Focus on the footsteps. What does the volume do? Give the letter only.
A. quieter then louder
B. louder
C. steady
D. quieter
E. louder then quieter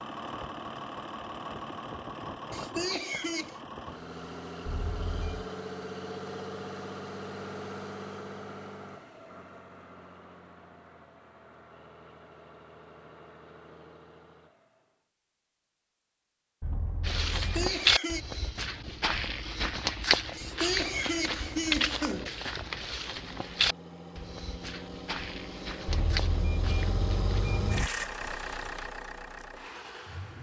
D.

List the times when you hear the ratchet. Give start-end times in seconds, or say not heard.
not heard.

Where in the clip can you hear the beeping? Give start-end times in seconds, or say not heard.
4.7-5.5, 16.6-17.8, 25.9-27.9.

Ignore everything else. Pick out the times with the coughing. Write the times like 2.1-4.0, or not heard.
2.5-3.6, 17.4-18.2, 20.4-22.3.